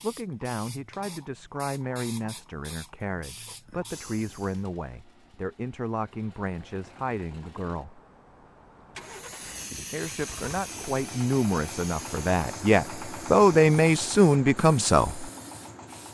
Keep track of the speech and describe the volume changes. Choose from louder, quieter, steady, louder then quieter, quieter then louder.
louder.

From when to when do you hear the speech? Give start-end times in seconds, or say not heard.
0.0-8.0, 9.9-15.3.